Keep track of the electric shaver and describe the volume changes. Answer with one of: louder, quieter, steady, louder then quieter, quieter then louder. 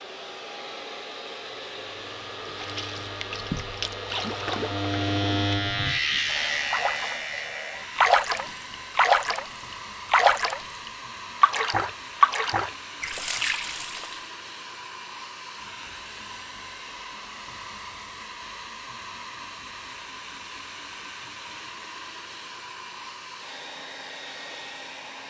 louder then quieter.